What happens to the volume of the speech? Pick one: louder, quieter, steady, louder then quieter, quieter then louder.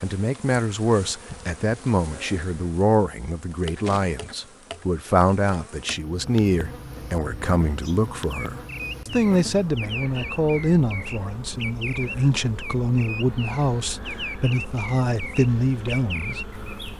steady.